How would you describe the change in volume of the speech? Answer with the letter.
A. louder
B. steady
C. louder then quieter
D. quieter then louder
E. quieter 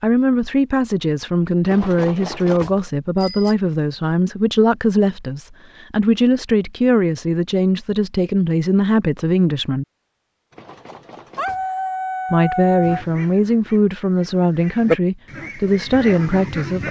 B.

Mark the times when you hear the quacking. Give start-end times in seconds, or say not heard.
12.8-16.8.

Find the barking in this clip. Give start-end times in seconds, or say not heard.
11.3-13.1.